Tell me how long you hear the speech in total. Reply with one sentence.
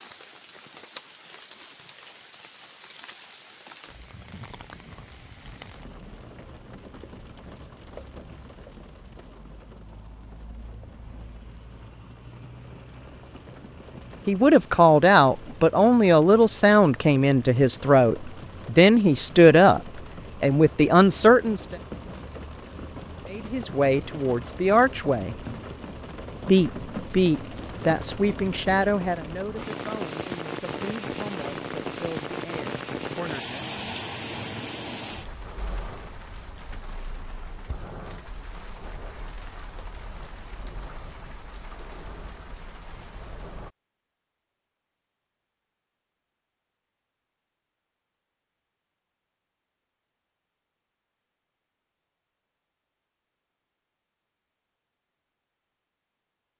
The speech can be heard for 17 seconds in total.